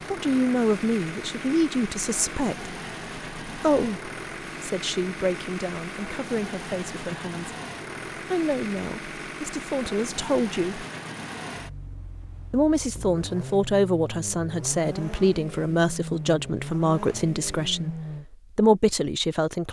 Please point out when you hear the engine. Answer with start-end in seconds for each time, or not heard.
0.0-18.2.